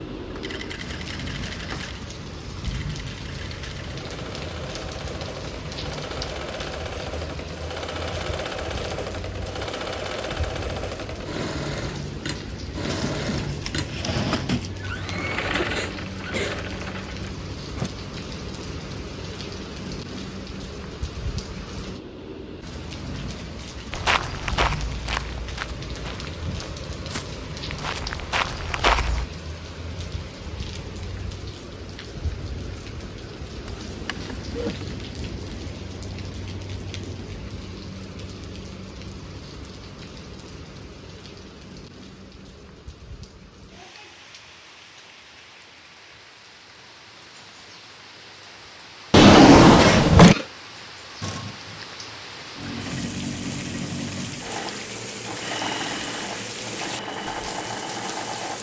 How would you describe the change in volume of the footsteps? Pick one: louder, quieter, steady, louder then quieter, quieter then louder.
quieter then louder.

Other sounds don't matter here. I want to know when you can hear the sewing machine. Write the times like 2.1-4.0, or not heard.
0.1-17.9, 51.2-58.5.